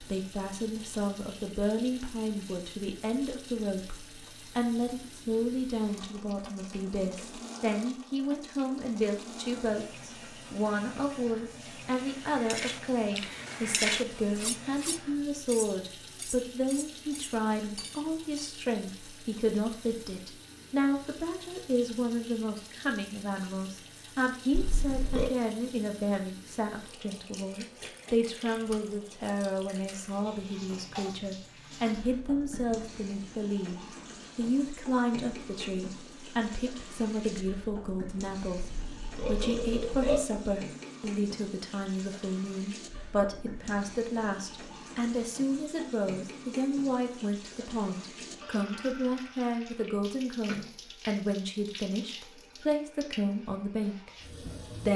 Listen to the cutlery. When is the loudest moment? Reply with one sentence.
The volume of the cutlery peaks at 14 seconds.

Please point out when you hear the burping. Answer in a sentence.
You can hear the burping from 24.5 to 25.3 s and from 38.7 to 40.2 s.